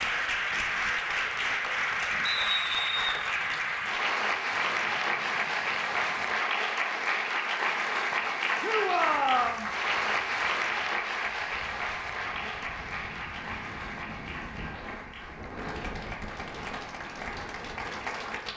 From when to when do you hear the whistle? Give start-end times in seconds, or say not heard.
2.2-3.1.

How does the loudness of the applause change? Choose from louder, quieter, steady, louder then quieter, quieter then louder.
quieter.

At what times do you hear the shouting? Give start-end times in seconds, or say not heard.
8.6-9.7.